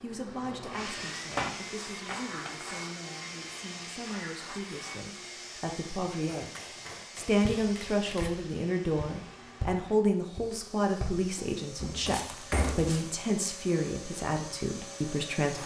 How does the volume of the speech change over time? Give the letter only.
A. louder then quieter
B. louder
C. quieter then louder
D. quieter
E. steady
B.